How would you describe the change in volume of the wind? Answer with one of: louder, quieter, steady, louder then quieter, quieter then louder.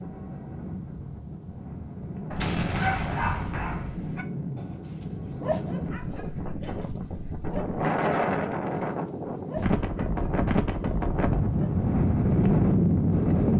louder.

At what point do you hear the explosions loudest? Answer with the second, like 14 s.
3 s.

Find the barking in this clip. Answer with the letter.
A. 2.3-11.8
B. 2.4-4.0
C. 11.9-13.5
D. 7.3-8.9
A.